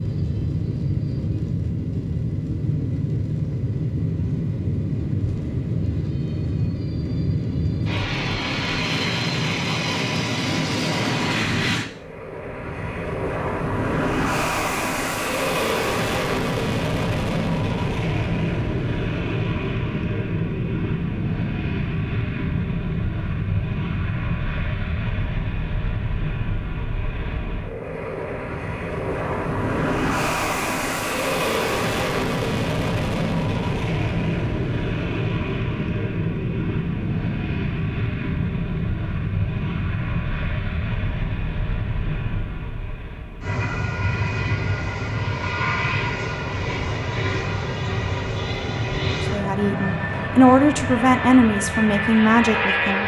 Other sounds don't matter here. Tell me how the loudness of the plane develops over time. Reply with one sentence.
The loudness of the plane stays about the same.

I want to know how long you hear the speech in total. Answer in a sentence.
You can hear the speech for 4 seconds altogether.